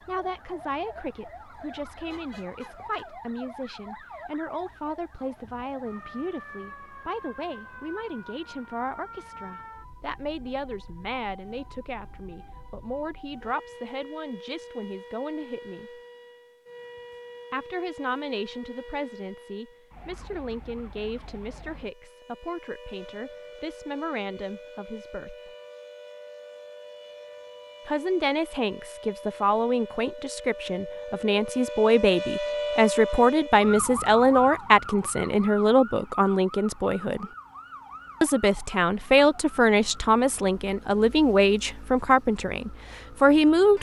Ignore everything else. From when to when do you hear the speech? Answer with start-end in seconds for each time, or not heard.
0.1-16.0, 17.5-25.5, 27.9-37.2, 38.2-43.7.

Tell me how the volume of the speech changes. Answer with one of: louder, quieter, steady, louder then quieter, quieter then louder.
louder.